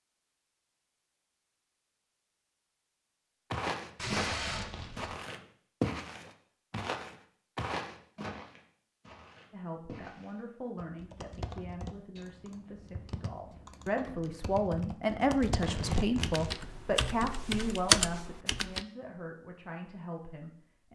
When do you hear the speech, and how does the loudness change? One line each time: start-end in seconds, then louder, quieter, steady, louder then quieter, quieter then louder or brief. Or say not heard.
9.5-20.8 louder then quieter.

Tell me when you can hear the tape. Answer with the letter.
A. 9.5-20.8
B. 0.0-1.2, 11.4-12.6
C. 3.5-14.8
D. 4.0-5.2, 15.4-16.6
D.